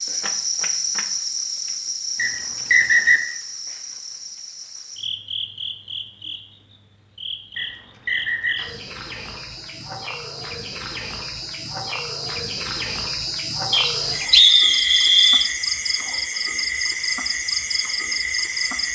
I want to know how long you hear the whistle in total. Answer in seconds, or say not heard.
4 s.